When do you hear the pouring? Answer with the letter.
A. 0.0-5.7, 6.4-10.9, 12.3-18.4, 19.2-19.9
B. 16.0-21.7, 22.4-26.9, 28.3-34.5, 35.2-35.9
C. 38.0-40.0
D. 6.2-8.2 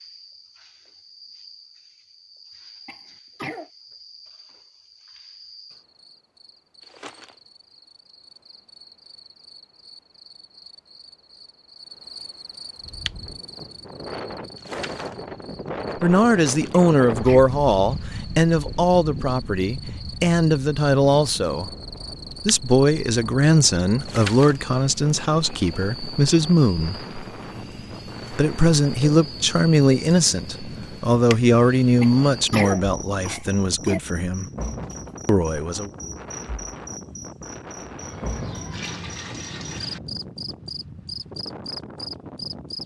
C.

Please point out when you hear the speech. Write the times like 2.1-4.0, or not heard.
16.0-21.7, 22.4-26.9, 28.3-34.5, 35.2-35.9.